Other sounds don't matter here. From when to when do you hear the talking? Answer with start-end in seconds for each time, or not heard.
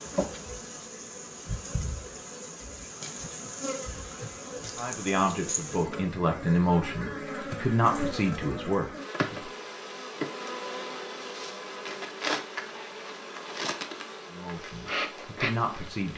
4.8-9.5, 14.3-16.1.